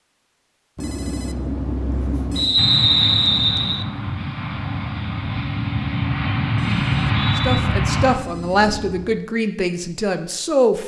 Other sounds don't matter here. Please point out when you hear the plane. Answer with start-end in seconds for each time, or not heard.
2.5-8.2.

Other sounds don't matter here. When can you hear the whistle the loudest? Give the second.
3 s.